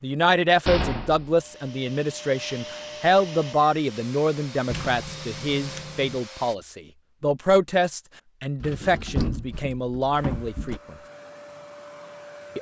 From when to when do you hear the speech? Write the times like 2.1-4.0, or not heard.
0.0-10.9.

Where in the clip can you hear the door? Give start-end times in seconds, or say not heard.
0.7-1.4, 4.7-6.2, 8.6-10.8.